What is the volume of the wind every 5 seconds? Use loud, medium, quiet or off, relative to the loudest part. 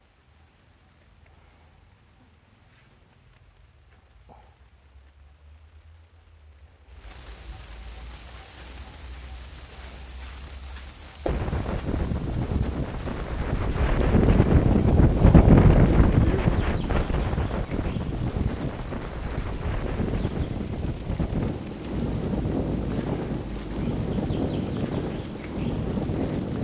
off, off, loud, loud, medium, medium.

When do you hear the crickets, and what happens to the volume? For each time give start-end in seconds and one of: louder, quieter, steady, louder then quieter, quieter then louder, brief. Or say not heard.
0.0-26.5 louder.